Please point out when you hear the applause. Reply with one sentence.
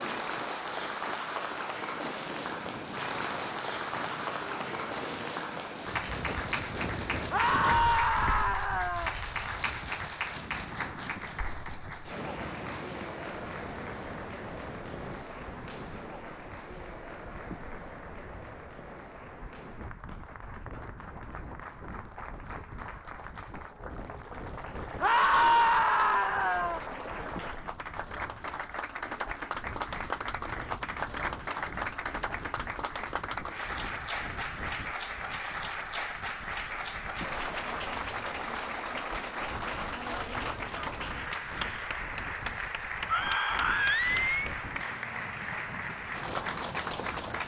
You can hear the applause from 0.0 to 47.4 s.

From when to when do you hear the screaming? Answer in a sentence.
The screaming can be heard from 7.3 to 9.1 s, from 25.0 to 26.8 s and from 43.0 to 44.5 s.